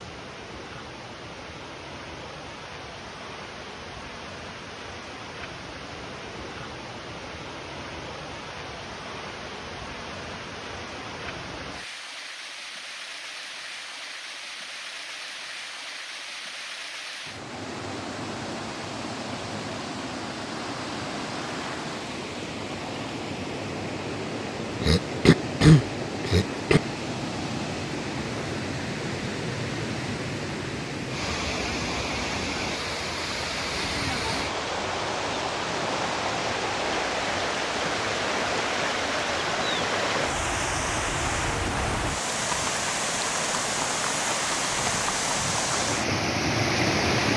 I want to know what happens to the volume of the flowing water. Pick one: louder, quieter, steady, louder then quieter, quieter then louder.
louder.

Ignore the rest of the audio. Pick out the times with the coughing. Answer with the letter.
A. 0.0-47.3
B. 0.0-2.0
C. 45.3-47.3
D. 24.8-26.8
D.